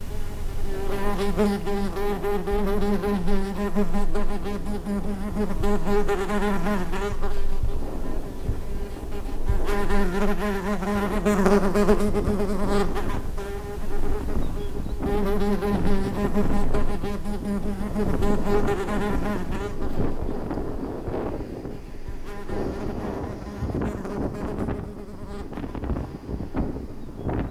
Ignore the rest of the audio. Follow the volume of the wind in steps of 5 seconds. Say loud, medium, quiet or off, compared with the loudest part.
medium, medium, medium, loud, loud, loud.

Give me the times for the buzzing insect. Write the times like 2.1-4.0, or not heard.
0.0-27.4.